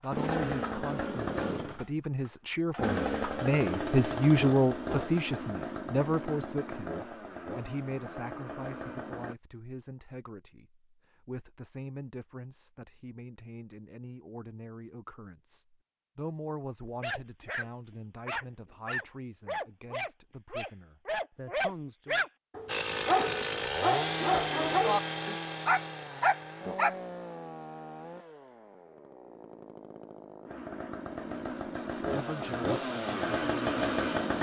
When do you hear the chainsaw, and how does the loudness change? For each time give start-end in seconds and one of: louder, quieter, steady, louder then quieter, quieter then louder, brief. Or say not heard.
0.0-9.3 quieter
22.6-34.3 quieter then louder.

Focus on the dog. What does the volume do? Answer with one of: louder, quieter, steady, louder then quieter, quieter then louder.
louder.